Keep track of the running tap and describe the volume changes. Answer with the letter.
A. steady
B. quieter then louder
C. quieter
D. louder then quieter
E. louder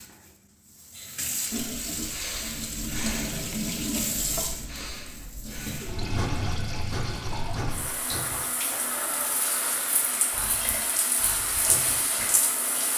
A.